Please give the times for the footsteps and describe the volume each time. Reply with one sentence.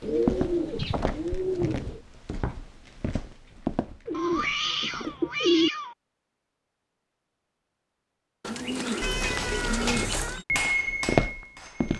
You can hear the footsteps from 0.1 to 5.2 s, getting louder then quieter; and briefly from 10.5 to 11.9 s.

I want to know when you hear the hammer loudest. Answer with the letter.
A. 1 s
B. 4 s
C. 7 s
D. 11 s
D.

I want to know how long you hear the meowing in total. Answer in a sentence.
The meowing can be heard for 4 seconds in total.